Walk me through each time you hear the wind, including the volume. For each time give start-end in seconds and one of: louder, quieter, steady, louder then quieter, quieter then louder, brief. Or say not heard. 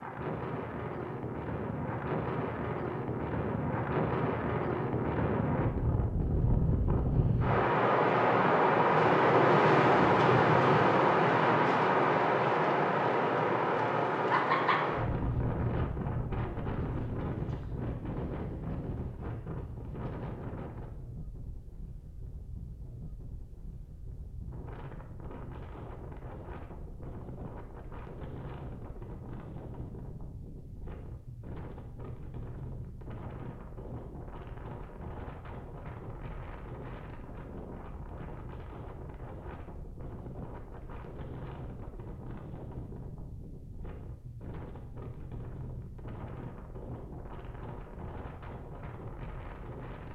0.0-50.0 quieter.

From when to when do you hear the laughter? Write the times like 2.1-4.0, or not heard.
14.3-14.8.